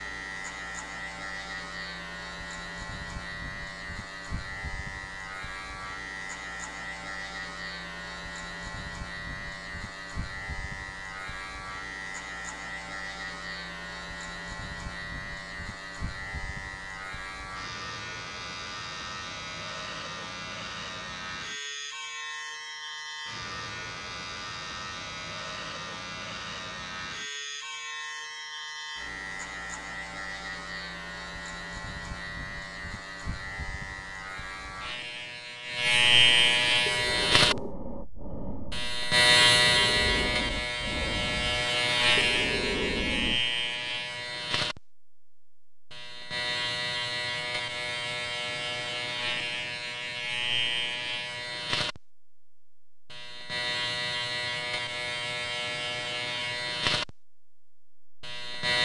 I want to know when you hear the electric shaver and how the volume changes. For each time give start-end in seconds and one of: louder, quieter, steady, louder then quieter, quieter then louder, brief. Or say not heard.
0.0-58.7 louder then quieter.